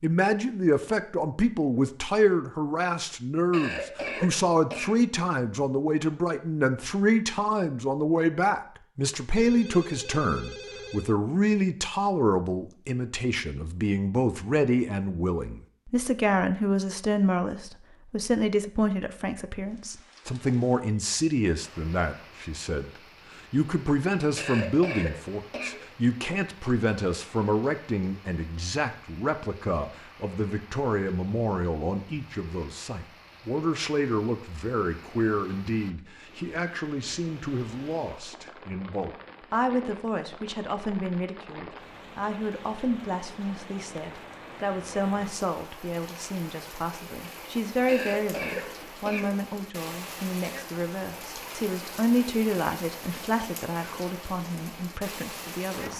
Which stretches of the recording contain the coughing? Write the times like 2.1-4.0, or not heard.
3.5-5.0, 24.4-25.9, 47.9-49.4.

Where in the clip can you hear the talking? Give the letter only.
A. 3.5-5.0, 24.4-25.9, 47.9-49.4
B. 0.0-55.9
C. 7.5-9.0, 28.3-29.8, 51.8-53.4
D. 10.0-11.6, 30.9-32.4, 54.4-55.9
B.